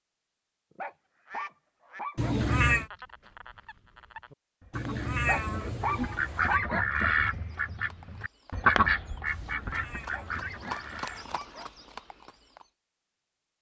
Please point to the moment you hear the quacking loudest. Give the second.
9 s.